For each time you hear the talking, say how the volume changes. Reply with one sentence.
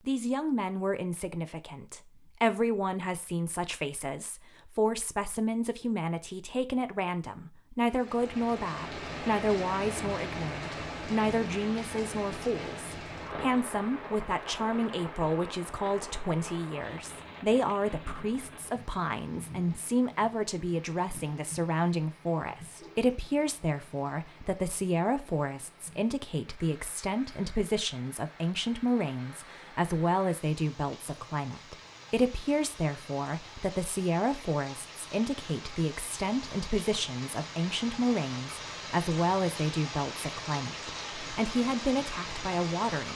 The talking can be heard from 0.1 to 43.1 s, at a steady volume.